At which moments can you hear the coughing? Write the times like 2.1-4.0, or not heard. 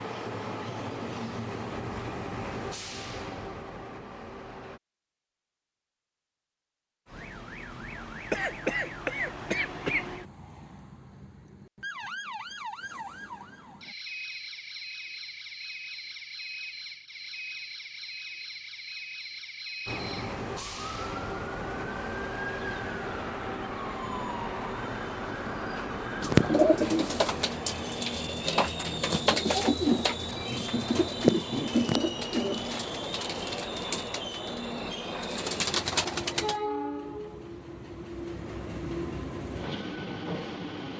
8.3-10.1.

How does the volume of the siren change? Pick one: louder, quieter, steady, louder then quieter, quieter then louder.
steady.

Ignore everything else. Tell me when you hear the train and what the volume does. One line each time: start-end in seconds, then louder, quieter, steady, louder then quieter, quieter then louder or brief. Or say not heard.
0.0-4.8 quieter
19.9-40.9 steady.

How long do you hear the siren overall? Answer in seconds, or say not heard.
20 s.